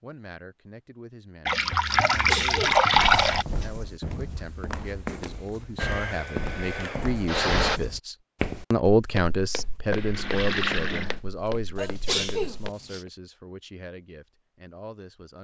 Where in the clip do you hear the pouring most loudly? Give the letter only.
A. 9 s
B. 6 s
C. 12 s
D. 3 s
D.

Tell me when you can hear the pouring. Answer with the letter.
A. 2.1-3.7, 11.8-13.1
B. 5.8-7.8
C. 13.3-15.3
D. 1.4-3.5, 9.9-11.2
D.